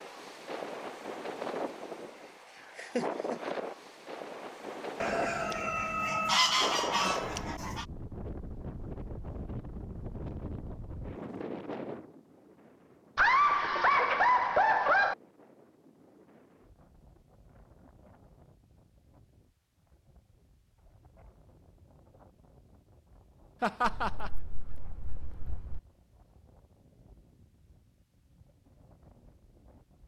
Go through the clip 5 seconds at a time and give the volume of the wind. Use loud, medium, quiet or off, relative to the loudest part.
loud, loud, loud, quiet, quiet, quiet.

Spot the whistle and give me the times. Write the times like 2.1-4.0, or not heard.
not heard.